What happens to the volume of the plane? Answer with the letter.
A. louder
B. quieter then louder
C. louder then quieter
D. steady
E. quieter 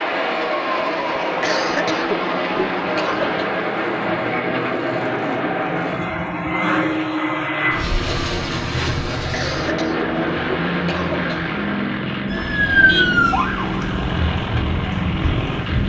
D.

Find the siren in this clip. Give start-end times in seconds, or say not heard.
12.2-15.8.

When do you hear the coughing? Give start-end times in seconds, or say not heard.
1.4-3.5, 9.3-11.6.